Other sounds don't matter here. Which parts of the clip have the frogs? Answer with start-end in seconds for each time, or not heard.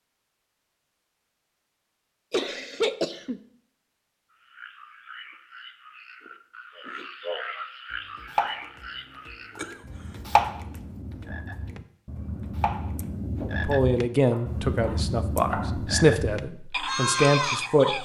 4.3-17.9.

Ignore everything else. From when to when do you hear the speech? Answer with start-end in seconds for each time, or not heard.
13.7-17.9.